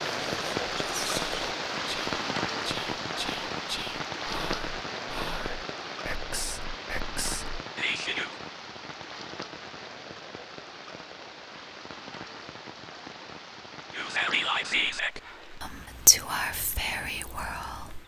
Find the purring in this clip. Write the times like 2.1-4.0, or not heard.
not heard.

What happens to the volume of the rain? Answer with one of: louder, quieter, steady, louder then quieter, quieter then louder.
quieter.